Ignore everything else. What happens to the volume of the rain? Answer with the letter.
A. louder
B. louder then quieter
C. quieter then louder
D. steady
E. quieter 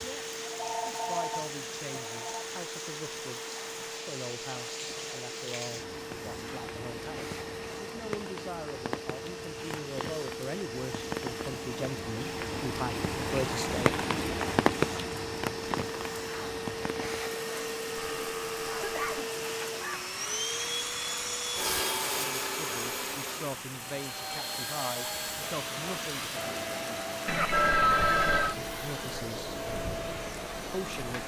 B.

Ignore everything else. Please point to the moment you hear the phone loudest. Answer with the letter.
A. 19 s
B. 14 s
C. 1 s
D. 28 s
D.